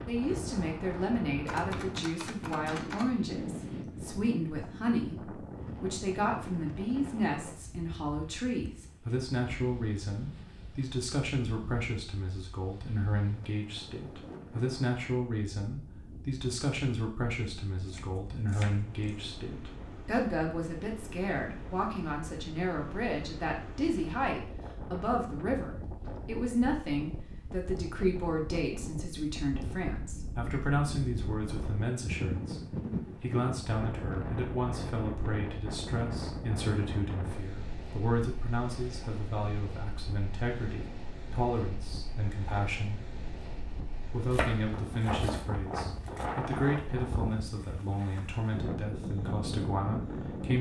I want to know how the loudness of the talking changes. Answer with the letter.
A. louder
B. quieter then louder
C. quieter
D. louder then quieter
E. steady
E.